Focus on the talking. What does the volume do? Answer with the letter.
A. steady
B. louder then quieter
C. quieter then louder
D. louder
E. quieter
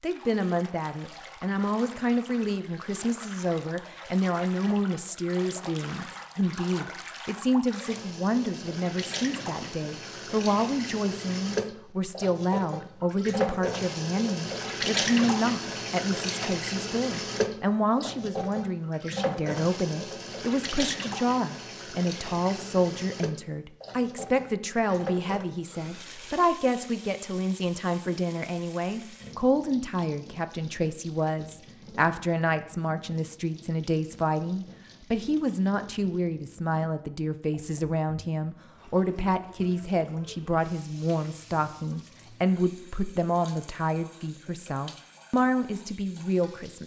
A.